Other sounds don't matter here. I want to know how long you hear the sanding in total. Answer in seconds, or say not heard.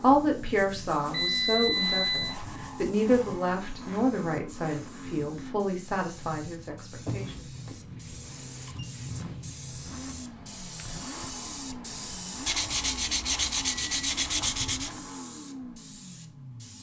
8 s.